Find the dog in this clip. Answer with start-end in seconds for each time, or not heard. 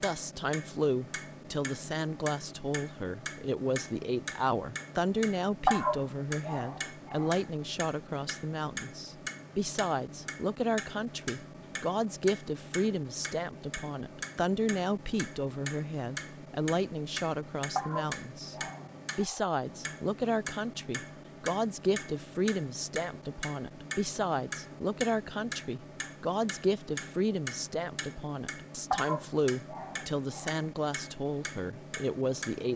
5.7-7.3, 17.8-19.4, 28.9-30.6.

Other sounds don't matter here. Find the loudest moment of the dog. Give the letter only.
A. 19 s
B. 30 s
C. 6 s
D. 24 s
C.